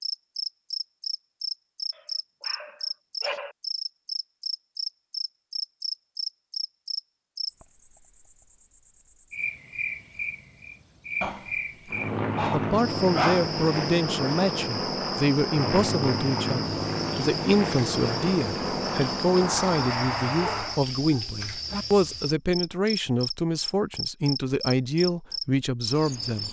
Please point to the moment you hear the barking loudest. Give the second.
13 s.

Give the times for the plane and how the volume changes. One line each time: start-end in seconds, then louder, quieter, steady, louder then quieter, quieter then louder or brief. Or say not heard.
11.8-20.8 steady.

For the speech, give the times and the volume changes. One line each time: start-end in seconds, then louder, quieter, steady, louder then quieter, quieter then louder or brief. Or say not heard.
12.5-26.4 steady.